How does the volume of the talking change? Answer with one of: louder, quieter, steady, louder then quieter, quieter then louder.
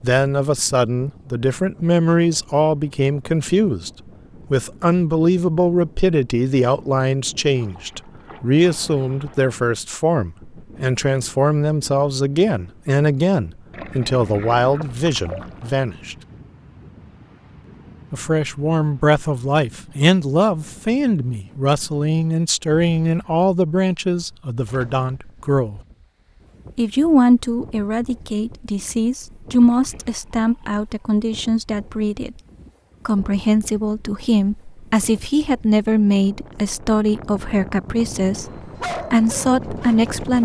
steady.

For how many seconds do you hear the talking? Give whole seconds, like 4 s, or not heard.
36 s.